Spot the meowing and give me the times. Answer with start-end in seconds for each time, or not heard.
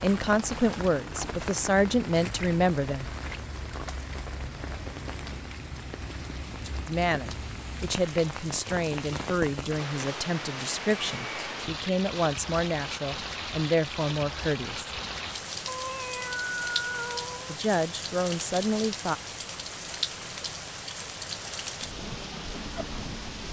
15.7-17.6.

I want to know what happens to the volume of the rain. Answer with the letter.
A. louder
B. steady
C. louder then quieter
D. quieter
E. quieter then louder
B.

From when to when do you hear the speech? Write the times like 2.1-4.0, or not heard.
0.0-3.0, 6.8-14.9, 17.4-19.1.